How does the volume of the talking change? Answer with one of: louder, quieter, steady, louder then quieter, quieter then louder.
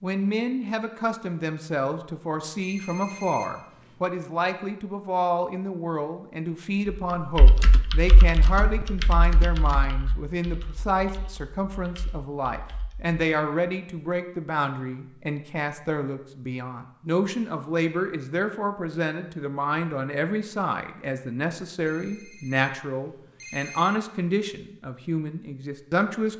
steady.